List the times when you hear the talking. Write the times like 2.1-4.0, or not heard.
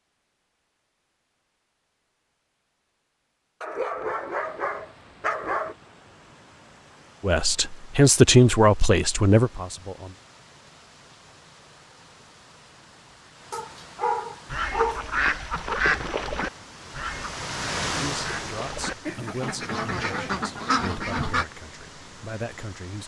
7.2-10.2, 17.9-23.0.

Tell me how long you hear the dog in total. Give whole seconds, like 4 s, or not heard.
4 s.